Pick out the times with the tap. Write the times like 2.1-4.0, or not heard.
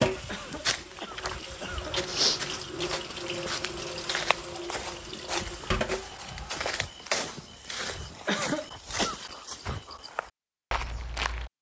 0.0-6.6.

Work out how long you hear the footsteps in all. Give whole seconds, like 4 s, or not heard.
11 s.